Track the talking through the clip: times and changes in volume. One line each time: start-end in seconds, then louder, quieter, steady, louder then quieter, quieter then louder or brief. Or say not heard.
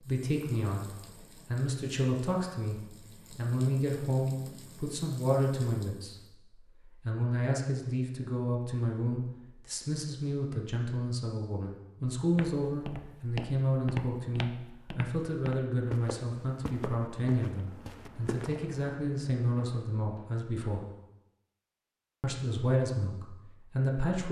0.0-20.9 steady
22.2-24.2 brief.